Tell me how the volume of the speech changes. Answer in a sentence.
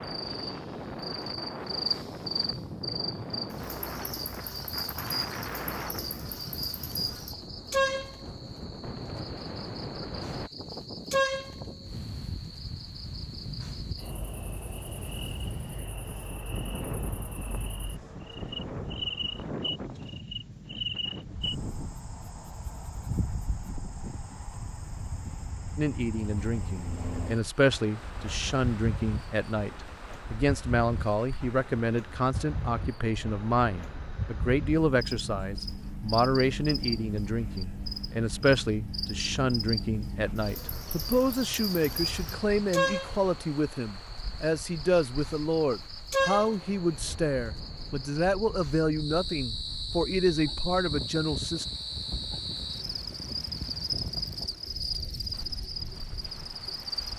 The loudness of the speech stays about the same.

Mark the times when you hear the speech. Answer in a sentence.
The speech can be heard from 25.8 to 51.6 s.